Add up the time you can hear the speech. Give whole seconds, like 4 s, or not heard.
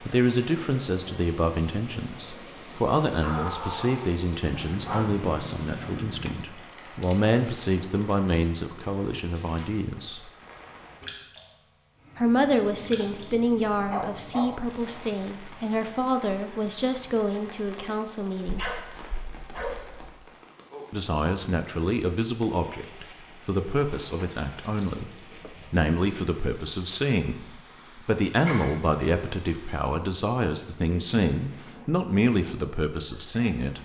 29 s.